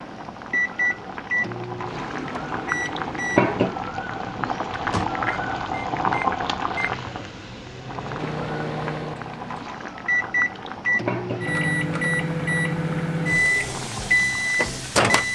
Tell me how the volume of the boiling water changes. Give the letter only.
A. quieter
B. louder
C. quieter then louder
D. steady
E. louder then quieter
E.